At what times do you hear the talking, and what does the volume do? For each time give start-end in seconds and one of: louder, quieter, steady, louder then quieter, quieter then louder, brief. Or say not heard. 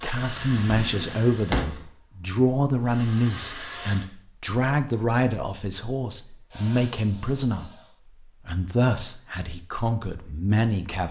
0.0-11.0 steady.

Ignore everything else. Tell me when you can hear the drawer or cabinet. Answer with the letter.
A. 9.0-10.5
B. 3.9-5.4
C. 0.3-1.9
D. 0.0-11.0
C.